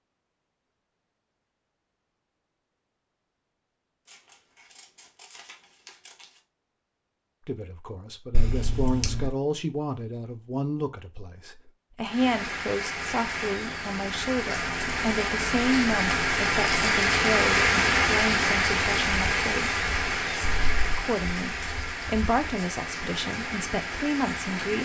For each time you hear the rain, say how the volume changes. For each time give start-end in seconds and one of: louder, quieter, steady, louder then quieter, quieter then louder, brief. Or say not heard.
12.0-24.8 louder then quieter.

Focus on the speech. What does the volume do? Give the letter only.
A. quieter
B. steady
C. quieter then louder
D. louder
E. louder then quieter
B.